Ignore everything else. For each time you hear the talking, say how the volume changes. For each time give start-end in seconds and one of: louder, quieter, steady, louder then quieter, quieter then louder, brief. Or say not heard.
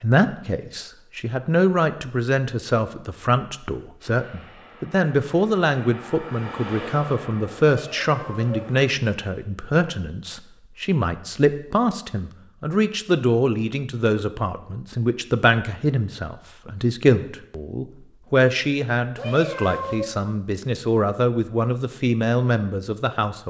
0.0-23.4 steady.